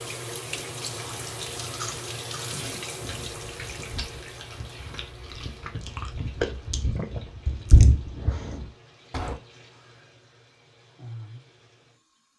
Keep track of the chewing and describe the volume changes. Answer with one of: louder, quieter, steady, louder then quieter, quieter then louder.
louder.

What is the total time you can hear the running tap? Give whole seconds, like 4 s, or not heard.
12 s.